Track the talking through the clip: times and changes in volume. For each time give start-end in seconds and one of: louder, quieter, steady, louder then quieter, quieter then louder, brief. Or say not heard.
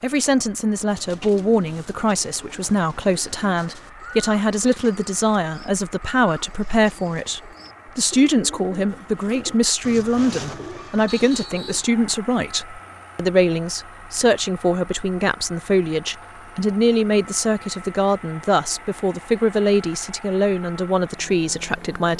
0.0-22.1 steady.